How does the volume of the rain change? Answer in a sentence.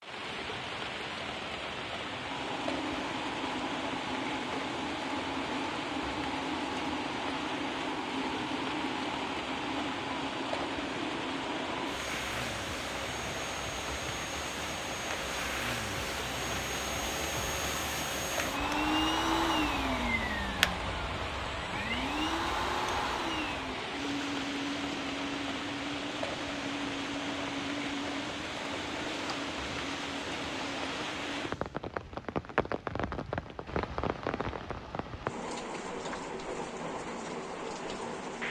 The loudness of the rain stays about the same.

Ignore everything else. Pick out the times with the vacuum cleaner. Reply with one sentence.
You can hear the vacuum cleaner from 2.1 to 31.8 s.